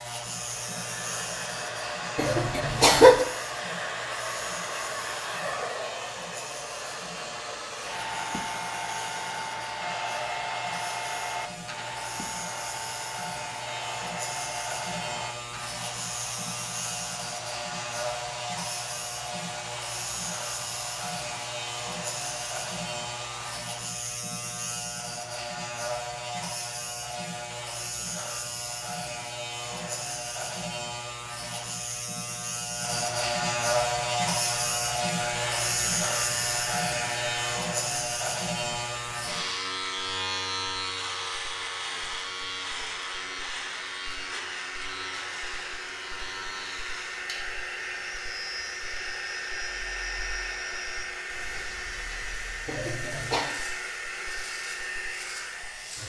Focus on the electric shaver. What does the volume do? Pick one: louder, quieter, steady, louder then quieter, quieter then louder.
louder then quieter.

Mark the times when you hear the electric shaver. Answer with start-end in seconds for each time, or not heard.
0.0-56.0.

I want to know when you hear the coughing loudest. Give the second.
3 s.